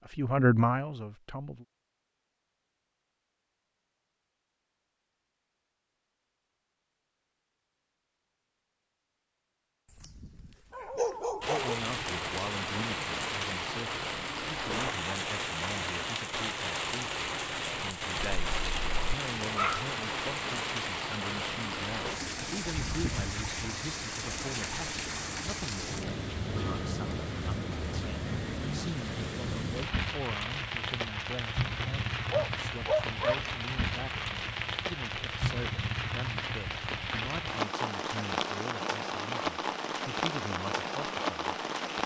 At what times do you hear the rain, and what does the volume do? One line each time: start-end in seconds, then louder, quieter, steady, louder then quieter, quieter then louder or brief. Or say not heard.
11.4-42.0 steady.